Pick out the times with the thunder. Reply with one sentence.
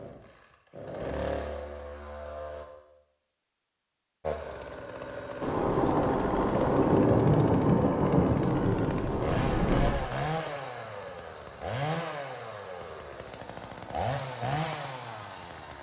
The thunder can be heard from 5.4 to 9.9 s.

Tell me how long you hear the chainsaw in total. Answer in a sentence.
The chainsaw can be heard for 14 seconds in total.